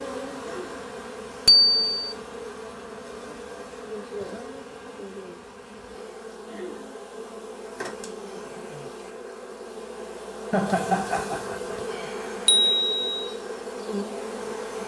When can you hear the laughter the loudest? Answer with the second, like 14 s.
11 s.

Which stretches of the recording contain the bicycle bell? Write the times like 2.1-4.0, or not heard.
1.4-2.1, 12.4-13.2.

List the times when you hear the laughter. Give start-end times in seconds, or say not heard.
0.4-0.8, 6.5-7.0, 10.5-11.6.